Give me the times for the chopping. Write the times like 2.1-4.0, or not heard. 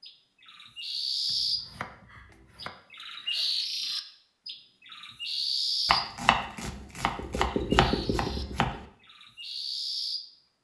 1.2-2.8, 5.8-8.8.